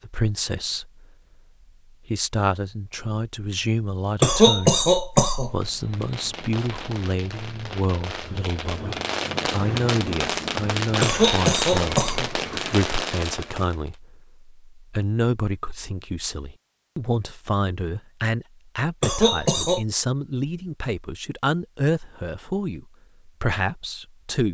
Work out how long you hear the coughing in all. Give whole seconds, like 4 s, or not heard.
4 s.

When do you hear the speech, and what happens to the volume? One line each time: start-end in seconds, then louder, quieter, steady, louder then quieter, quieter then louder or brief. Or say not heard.
0.0-1.1 brief
2.0-24.4 steady.